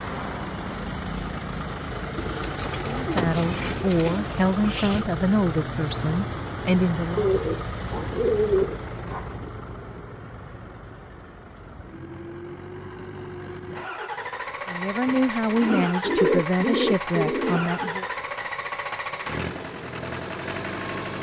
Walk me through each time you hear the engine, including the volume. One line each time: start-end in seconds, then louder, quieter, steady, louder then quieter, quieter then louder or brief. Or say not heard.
0.0-21.1 quieter then louder.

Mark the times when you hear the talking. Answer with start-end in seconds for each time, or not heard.
2.9-7.3, 14.7-18.1.